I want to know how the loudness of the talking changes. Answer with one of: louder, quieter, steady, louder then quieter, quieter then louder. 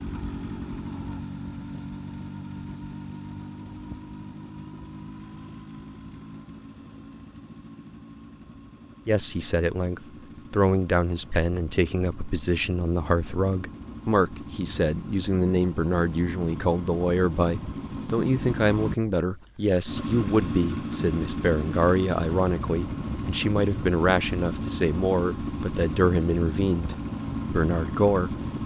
steady.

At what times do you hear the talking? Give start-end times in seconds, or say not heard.
9.1-28.4.